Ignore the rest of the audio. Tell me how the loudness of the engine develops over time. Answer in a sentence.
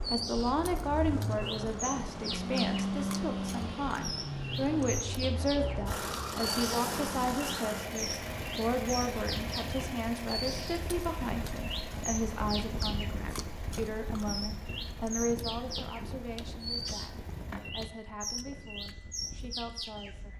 The loudness of the engine goes down.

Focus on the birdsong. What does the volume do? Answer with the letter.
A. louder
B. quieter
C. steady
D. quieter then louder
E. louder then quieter
C.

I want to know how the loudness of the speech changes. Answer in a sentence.
The volume of the speech goes down.